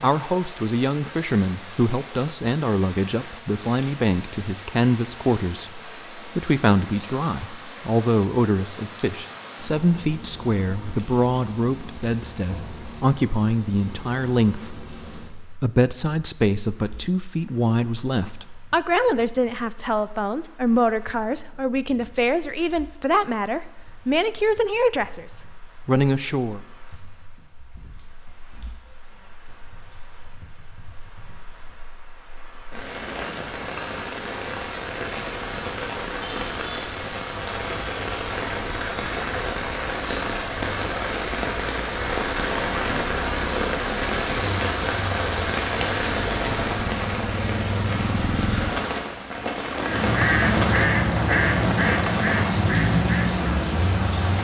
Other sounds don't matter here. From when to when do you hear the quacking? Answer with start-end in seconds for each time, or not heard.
49.8-54.3.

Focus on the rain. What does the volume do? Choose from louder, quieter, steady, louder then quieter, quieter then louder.
quieter then louder.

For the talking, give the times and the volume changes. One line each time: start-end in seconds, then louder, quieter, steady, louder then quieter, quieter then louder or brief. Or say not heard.
0.0-26.6 steady.